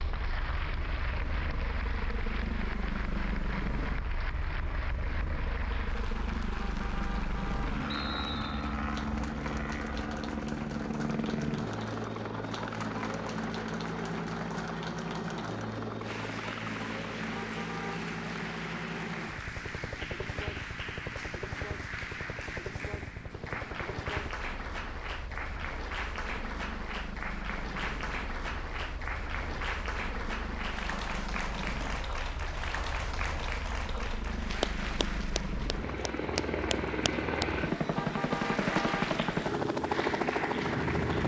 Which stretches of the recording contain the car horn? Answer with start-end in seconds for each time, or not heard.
6.6-7.7, 17.4-18.1, 38.0-39.1.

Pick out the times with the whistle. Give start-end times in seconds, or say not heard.
7.8-8.8.